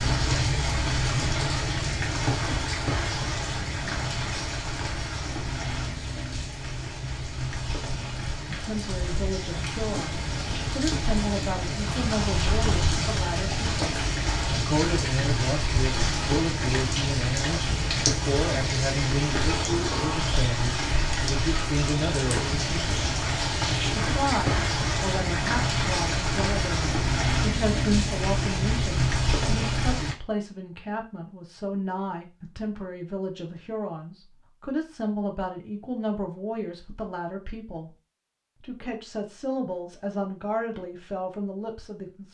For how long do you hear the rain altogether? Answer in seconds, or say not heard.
30 s.